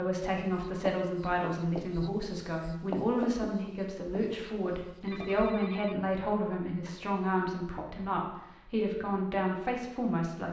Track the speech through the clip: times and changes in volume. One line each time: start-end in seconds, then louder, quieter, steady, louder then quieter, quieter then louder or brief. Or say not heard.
0.0-10.4 steady.